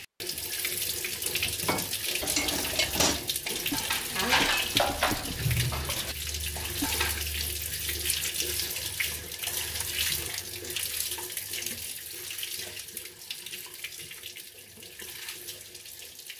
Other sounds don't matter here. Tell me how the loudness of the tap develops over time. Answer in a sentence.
The loudness of the tap goes down.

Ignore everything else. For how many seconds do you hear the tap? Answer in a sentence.
The tap can be heard for 16 seconds in total.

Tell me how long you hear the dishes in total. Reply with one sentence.
You can hear the dishes for 6 seconds altogether.